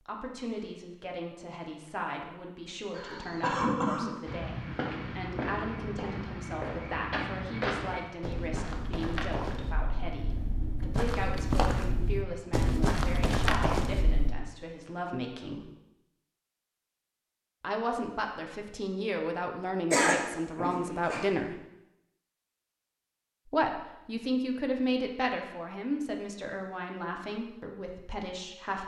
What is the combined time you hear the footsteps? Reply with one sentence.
You can hear the footsteps for 10 seconds altogether.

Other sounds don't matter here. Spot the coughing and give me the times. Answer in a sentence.
The coughing can be heard from 3.0 to 4.2 s and from 19.9 to 21.2 s.